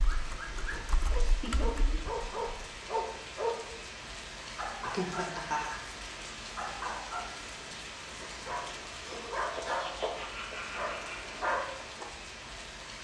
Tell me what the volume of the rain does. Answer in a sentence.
The volume of the rain stays about the same.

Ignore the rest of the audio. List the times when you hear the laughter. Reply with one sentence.
You can hear the laughter from 1.2 to 2.0 s, from 4.8 to 5.8 s and from 9.1 to 11.3 s.